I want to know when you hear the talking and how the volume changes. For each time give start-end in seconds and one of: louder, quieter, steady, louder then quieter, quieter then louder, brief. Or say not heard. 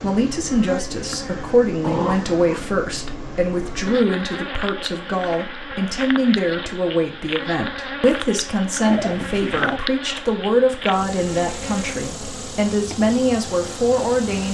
0.0-14.5 steady.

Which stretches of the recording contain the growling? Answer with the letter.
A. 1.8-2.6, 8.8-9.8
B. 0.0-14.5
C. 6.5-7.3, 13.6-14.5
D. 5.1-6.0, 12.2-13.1
A.